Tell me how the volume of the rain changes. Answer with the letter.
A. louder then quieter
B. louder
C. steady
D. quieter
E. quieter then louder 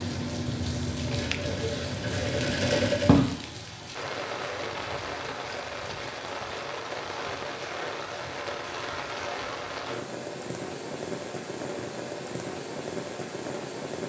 C.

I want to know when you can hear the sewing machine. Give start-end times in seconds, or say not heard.
0.0-3.3.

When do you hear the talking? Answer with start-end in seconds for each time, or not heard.
not heard.